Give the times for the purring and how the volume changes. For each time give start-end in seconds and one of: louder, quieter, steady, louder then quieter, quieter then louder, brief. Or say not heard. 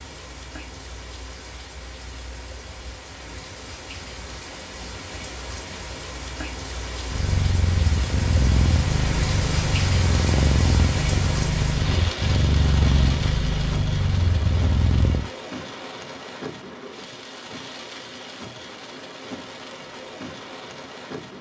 7.0-15.3 steady.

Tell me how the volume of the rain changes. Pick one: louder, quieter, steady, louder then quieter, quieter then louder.
louder then quieter.